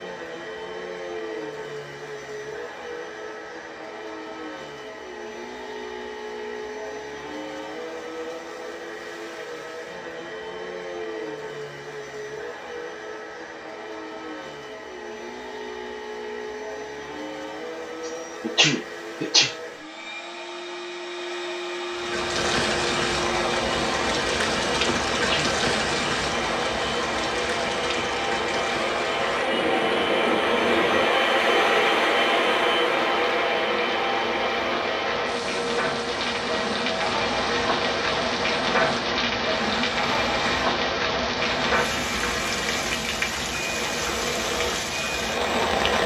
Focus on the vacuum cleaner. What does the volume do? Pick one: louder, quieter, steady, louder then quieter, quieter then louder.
louder then quieter.